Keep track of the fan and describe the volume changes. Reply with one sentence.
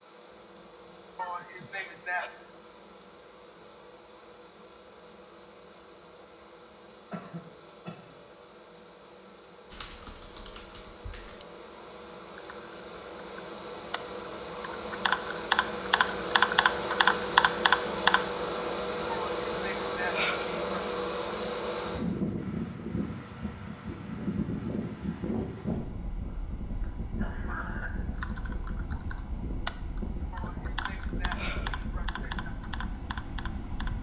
The loudness of the fan goes up, then down.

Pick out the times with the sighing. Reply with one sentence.
You can hear the sighing from 1.1 to 2.3 s, from 19.1 to 20.9 s and from 30.3 to 32.5 s.